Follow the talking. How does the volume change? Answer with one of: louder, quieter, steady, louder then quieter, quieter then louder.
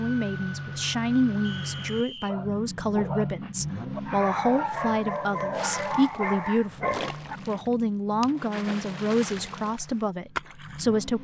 steady.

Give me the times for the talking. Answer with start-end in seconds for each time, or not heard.
0.0-11.1.